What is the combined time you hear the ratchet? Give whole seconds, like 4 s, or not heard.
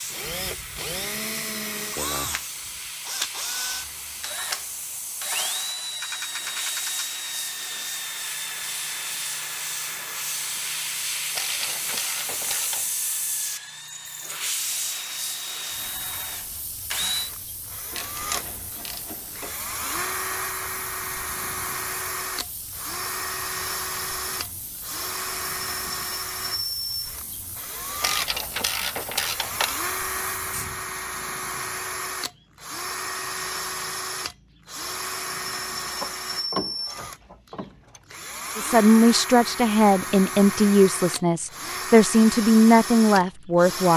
8 s.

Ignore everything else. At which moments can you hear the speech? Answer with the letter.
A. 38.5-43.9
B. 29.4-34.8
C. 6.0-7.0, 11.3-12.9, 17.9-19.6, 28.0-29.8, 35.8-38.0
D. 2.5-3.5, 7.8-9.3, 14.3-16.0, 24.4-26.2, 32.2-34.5
A.